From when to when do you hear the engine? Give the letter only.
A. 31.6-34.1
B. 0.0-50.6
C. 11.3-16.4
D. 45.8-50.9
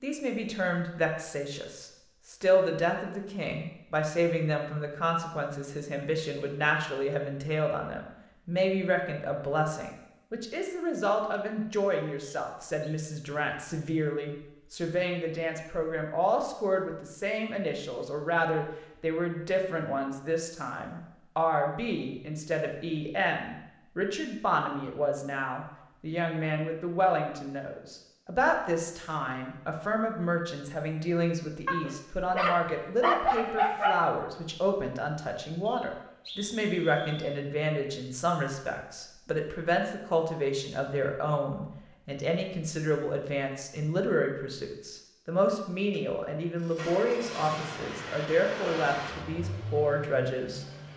D.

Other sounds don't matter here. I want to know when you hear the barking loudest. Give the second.
34 s.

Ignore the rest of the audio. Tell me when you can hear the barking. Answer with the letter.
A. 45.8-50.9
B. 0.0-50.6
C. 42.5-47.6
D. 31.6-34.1
D.